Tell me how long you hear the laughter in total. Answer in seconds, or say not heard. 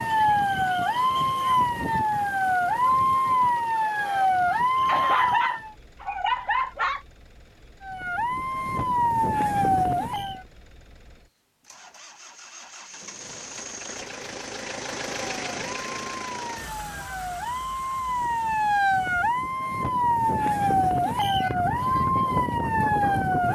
2 s.